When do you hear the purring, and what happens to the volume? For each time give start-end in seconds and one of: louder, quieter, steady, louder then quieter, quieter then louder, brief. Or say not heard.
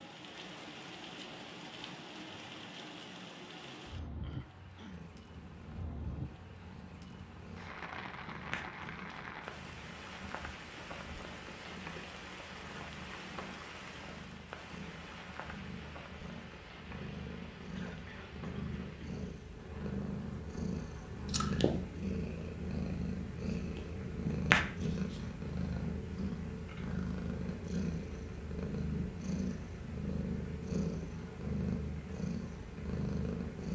4.9-33.7 louder.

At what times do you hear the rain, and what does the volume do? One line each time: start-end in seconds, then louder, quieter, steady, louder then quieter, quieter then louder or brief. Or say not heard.
0.0-33.7 quieter.